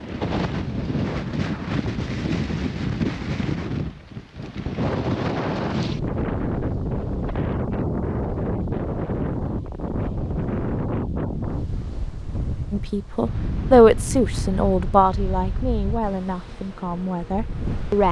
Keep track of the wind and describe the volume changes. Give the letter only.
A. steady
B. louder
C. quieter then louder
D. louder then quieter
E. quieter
E.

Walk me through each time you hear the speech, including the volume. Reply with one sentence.
The speech can be heard from 12.7 to 18.0 s, getting quieter.